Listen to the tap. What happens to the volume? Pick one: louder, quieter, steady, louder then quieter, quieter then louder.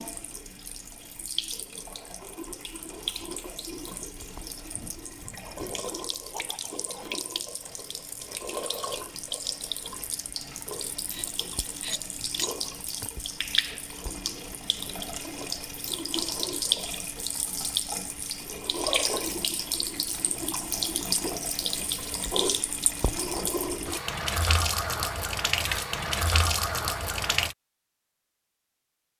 louder.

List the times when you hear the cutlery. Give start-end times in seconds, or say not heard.
11.1-13.1.